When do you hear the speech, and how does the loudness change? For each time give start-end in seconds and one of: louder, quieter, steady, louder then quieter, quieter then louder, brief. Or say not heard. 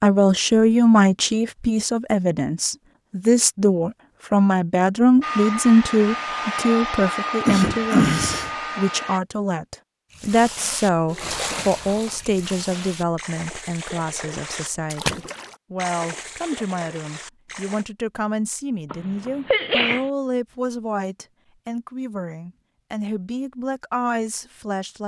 0.0-25.0 quieter.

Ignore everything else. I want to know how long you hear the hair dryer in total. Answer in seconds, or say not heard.
4 s.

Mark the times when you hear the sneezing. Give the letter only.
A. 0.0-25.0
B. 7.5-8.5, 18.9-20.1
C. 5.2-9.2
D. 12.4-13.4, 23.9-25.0
B.